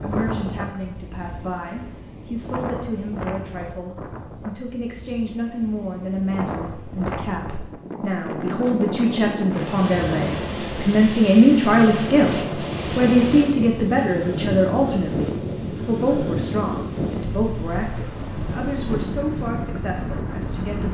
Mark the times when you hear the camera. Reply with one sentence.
You can't hear the camera here.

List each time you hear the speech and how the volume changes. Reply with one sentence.
You can hear the speech from 0.0 to 20.8 s, getting louder then quieter.